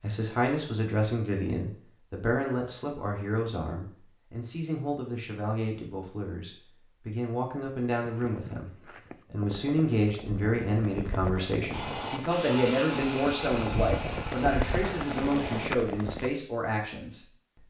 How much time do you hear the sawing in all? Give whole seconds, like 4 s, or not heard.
4 s.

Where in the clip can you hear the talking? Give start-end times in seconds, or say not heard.
0.0-17.6.